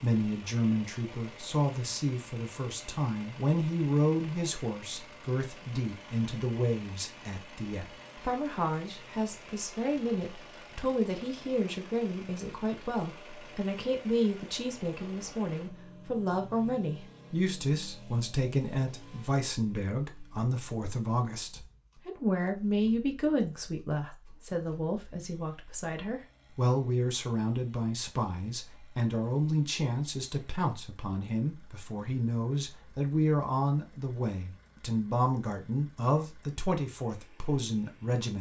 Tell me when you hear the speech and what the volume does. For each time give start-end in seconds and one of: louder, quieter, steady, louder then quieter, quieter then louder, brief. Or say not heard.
0.0-38.3 steady.